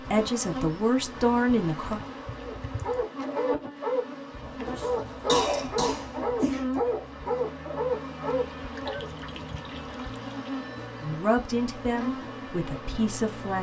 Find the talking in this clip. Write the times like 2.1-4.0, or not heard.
0.0-2.0, 11.0-13.5.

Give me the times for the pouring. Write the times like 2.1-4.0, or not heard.
2.2-3.0, 8.8-10.6.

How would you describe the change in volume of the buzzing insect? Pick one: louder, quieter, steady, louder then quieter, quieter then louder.
steady.